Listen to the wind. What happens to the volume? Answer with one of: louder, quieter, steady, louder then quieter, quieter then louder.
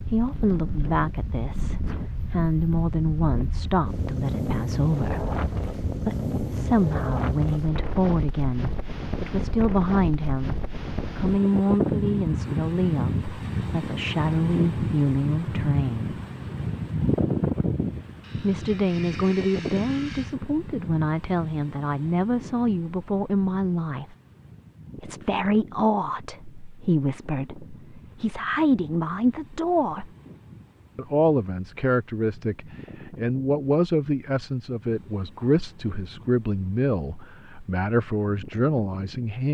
quieter.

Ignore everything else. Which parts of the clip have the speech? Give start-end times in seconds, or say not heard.
0.0-16.1, 18.4-24.1, 24.9-30.1, 30.9-39.4.